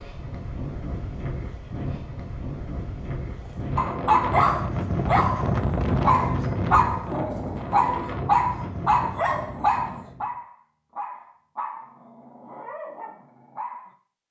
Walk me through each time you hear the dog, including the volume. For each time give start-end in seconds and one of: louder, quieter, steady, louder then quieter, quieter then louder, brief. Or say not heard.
3.5-13.9 quieter.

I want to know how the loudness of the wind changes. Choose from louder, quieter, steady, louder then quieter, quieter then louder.
louder then quieter.